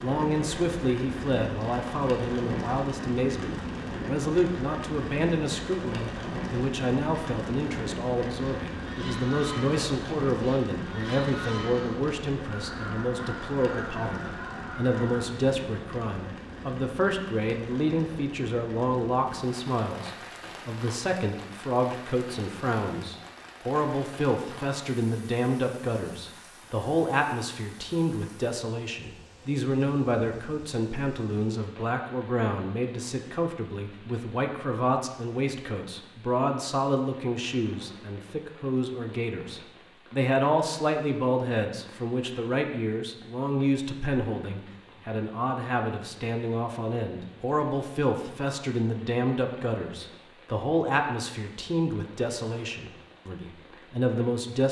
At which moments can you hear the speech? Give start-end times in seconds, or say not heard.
0.0-54.6.